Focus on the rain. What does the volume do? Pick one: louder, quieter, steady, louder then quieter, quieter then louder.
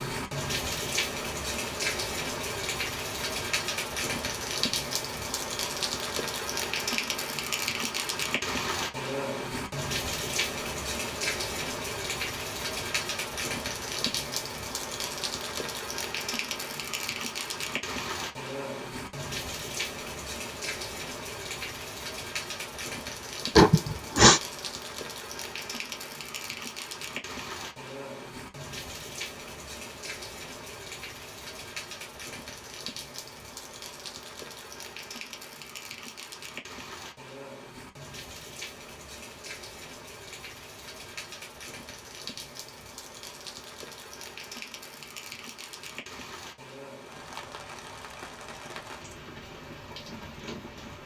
quieter.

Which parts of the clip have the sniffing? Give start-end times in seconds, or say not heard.
23.6-24.4.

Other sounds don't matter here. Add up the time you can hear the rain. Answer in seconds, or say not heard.
51 s.